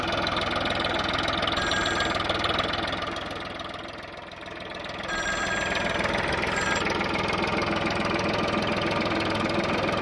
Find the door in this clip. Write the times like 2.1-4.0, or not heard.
not heard.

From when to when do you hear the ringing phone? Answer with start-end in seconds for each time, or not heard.
1.6-2.2, 5.0-6.8.